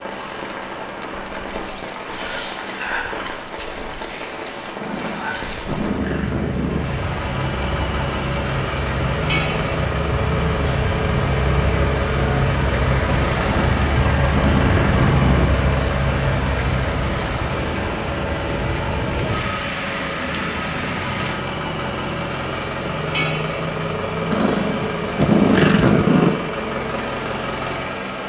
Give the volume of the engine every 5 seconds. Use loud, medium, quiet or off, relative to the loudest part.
quiet, loud, loud, loud, loud, loud.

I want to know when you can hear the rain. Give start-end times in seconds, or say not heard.
0.0-21.4.